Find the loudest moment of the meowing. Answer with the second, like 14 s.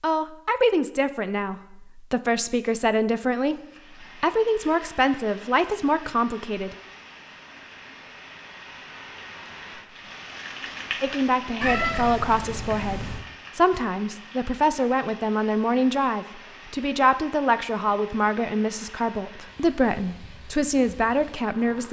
12 s.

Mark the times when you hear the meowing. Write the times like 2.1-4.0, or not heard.
11.6-13.2.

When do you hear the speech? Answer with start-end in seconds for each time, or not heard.
0.0-6.8, 11.0-21.8.